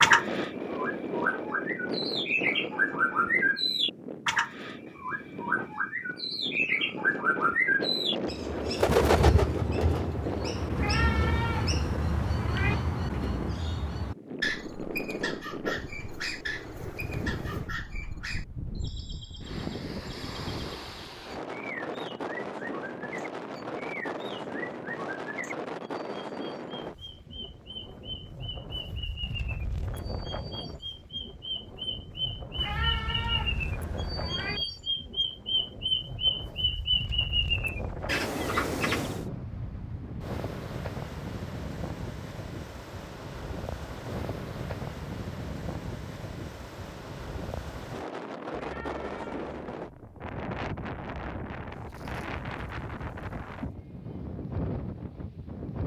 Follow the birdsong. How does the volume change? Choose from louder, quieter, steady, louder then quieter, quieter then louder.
quieter then louder.